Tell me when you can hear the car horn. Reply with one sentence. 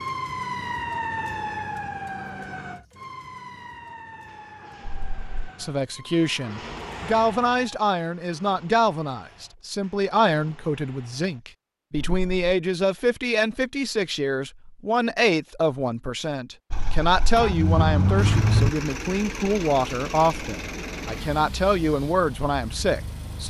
The car horn can be heard from 4.8 to 5.3 s, from 11.9 to 12.5 s and from 16.7 to 18.7 s.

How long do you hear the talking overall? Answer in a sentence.
The talking can be heard for 18 seconds in total.